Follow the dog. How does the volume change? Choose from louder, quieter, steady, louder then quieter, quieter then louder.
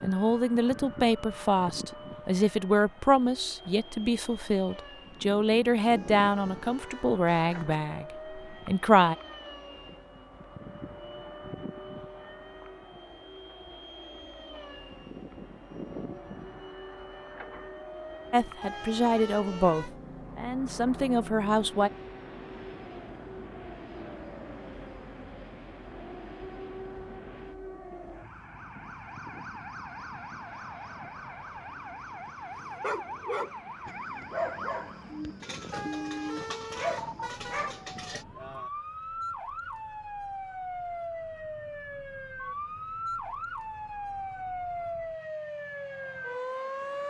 quieter then louder.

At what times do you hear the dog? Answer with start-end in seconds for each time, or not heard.
32.5-38.2.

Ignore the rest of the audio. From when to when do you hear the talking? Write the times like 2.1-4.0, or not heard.
0.0-9.2, 18.3-21.9.